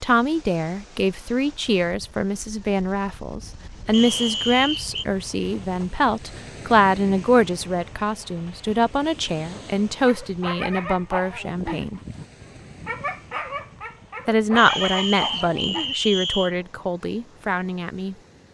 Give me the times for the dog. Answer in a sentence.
The dog can be heard from 10.1 to 15.9 s.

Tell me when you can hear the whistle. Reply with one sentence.
You can hear the whistle from 3.9 to 5.0 s and from 14.6 to 16.6 s.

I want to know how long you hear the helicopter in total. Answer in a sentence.
The helicopter can't be heard in this clip.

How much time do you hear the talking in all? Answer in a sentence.
You can hear the talking for 16 seconds altogether.